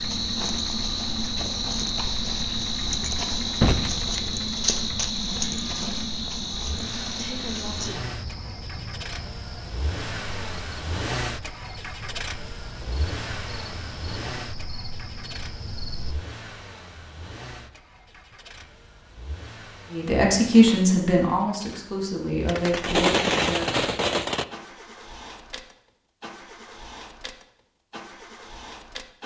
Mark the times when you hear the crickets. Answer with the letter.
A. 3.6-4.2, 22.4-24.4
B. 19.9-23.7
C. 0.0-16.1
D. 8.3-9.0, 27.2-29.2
C.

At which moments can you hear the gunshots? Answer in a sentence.
You can hear the gunshots from 3.6 to 4.2 s and from 22.4 to 24.4 s.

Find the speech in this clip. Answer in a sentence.
The speech can be heard from 19.9 to 23.7 s.